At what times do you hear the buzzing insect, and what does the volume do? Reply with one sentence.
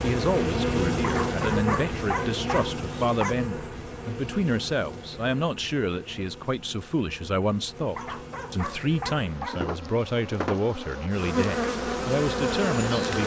The buzzing insect can be heard from 0.0 to 13.2 s, getting quieter then louder.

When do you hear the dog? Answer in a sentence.
You can hear the dog from 1.0 to 3.4 s and from 8.0 to 9.7 s.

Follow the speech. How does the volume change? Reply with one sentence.
The volume of the speech stays about the same.